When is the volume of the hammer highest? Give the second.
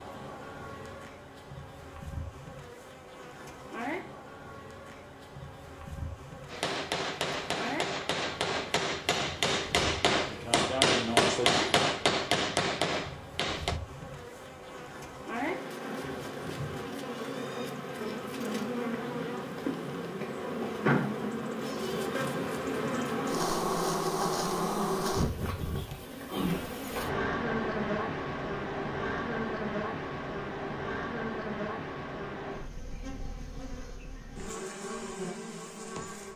11 s.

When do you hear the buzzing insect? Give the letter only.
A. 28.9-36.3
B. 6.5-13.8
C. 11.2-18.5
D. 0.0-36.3
D.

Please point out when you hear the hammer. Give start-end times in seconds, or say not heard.
6.5-13.8.